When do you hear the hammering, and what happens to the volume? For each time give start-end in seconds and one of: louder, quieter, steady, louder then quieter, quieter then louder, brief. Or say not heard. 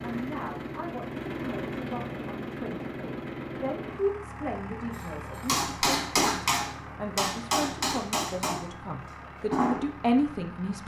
5.5-9.9 quieter.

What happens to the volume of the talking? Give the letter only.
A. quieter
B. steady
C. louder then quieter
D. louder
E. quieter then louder
D.